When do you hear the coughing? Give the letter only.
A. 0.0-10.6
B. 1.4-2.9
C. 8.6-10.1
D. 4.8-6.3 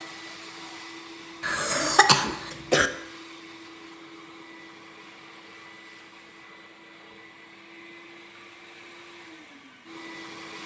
B.